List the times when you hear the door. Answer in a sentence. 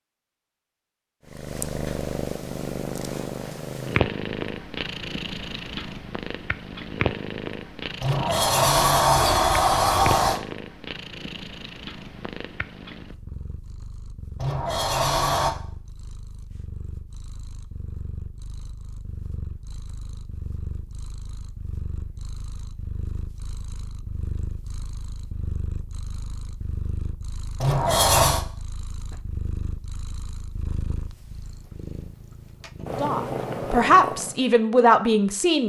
You can hear the door from 8.0 to 10.4 s, from 14.3 to 15.6 s and from 27.6 to 28.4 s.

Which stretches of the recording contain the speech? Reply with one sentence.
You can hear the speech from 33.0 to 35.6 s.